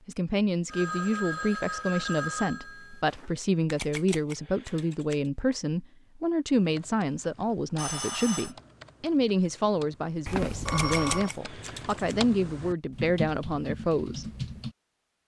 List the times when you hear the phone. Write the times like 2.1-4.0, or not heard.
0.7-3.3, 7.8-8.6, 10.2-11.3.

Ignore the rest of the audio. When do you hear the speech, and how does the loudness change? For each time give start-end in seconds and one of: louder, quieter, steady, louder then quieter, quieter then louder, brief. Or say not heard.
0.1-14.2 steady.